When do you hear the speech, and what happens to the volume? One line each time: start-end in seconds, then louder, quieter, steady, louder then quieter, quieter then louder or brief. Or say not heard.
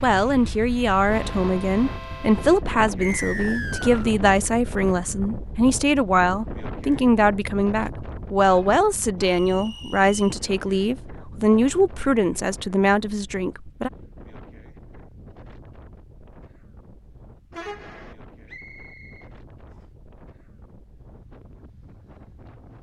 0.0-13.9 steady.